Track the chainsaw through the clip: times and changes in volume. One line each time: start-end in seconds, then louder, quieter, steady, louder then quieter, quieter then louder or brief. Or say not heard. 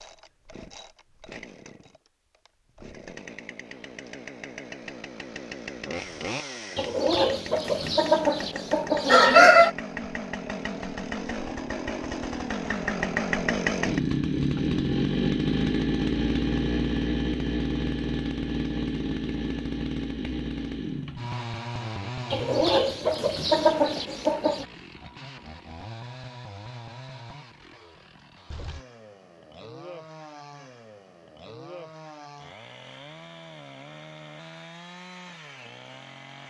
0.0-36.4 louder then quieter.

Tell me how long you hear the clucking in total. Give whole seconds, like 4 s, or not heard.
5 s.